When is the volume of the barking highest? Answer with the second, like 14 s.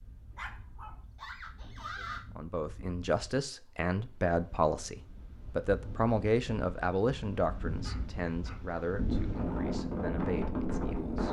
2 s.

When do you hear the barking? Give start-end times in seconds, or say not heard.
0.3-2.2, 7.8-8.6.